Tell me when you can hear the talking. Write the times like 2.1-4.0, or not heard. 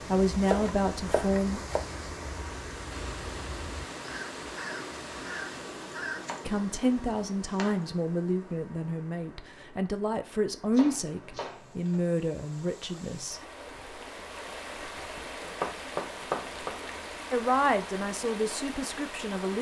0.1-1.6, 6.5-13.4, 17.3-19.5.